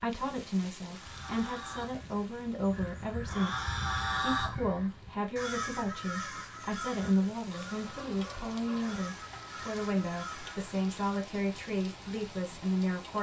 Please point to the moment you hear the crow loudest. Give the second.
4 s.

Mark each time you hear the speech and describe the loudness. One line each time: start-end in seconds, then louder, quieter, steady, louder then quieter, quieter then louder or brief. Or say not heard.
0.0-13.1 steady.